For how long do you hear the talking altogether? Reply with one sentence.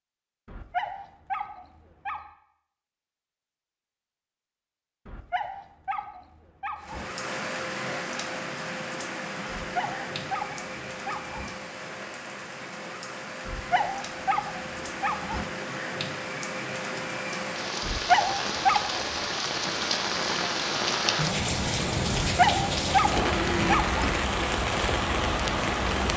The talking can't be heard in this clip.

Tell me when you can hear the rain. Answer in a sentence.
You can hear the rain from 6.8 to 26.1 s.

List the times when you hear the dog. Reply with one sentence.
You can hear the dog from 0.5 to 2.2 s, from 5.0 to 7.0 s, from 9.6 to 11.5 s, from 13.4 to 15.4 s, from 17.8 to 19.0 s and from 22.2 to 24.1 s.